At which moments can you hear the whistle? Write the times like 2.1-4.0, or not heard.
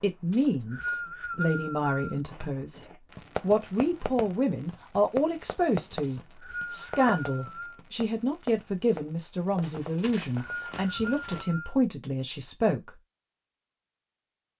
0.3-2.2, 6.0-7.8, 9.9-11.8.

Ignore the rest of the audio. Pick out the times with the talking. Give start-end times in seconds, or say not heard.
0.0-2.8, 3.4-12.9.